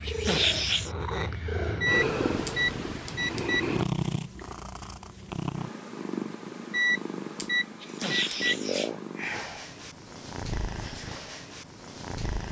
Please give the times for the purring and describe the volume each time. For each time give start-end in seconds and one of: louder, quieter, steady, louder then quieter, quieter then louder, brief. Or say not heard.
0.0-12.4 quieter.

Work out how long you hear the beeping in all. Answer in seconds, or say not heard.
4 s.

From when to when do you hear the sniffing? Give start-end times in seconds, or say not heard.
0.1-0.9, 7.8-9.7.